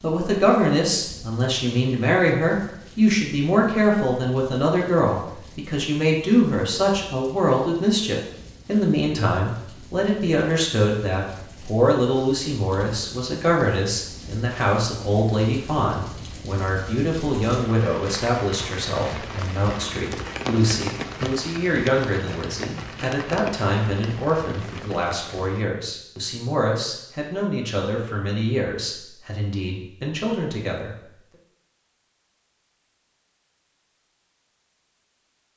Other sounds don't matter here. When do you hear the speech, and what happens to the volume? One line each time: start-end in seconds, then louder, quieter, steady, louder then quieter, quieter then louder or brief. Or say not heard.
0.0-30.9 quieter.